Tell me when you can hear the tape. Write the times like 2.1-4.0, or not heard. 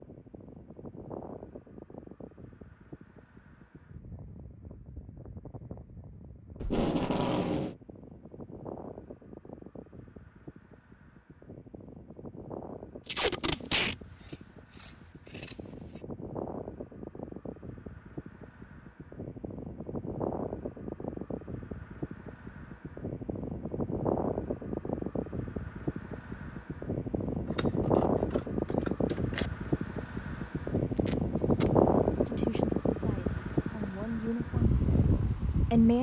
6.6-7.8, 13.1-13.9, 30.9-31.7.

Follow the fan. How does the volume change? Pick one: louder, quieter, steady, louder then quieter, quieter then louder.
louder.